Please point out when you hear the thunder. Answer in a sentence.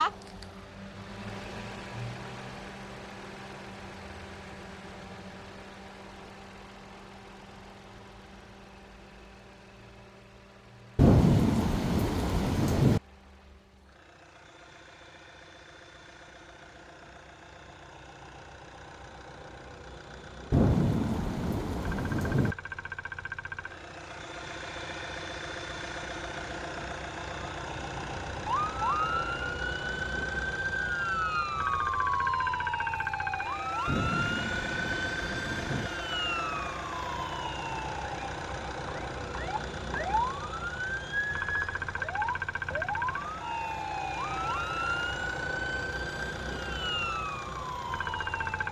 The thunder can be heard from 10.9 to 13.0 s, from 20.5 to 22.6 s and from 33.9 to 35.9 s.